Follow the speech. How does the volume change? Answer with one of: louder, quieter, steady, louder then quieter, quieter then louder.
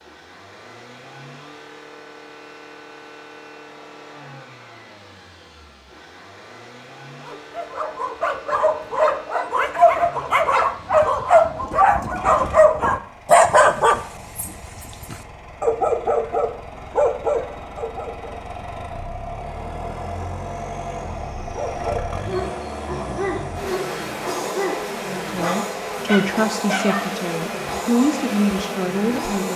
quieter then louder.